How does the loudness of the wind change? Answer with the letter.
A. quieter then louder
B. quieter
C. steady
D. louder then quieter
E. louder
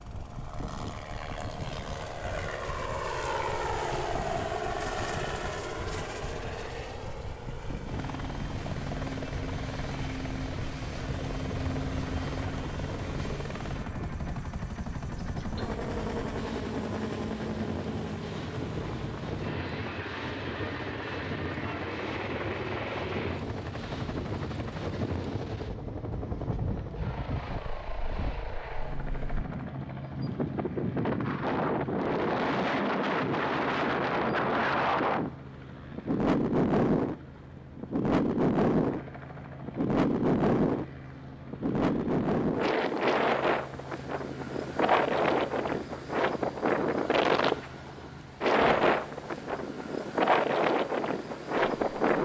E.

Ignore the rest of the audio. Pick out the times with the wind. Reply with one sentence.
You can hear the wind from 0.0 to 52.1 s.